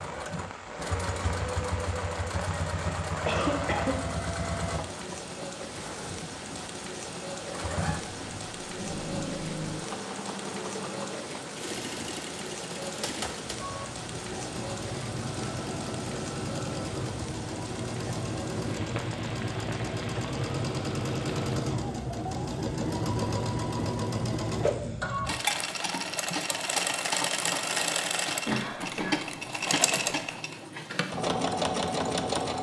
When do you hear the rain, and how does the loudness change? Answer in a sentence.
You can hear the rain from 0.0 to 21.6 s, at a steady volume.